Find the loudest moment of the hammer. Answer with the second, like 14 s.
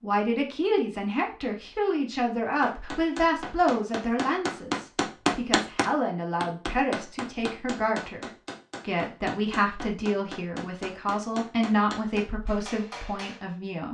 5 s.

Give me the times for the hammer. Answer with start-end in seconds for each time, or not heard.
2.6-13.4.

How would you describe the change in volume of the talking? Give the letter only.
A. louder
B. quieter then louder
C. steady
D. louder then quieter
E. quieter
C.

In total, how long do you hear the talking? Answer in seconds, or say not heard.
14 s.